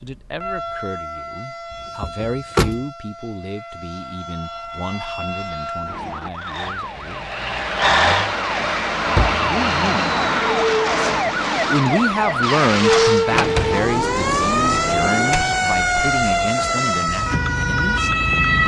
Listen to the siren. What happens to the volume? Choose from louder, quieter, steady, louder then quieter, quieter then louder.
louder.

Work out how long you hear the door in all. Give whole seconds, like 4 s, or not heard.
4 s.